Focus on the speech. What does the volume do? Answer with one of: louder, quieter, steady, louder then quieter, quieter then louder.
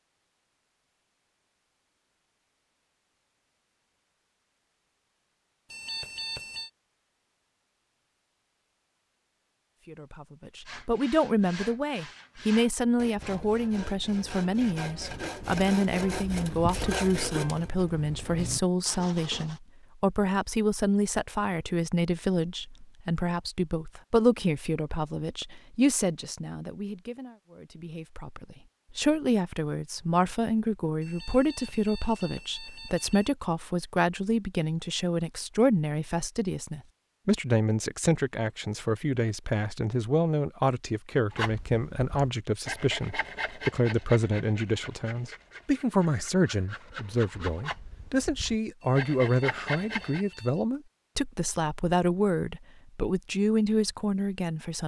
steady.